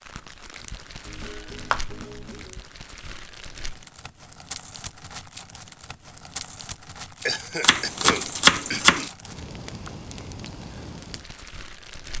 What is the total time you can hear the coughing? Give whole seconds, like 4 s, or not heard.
2 s.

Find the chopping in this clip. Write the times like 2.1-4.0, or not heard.
1.1-2.4, 7.6-9.1.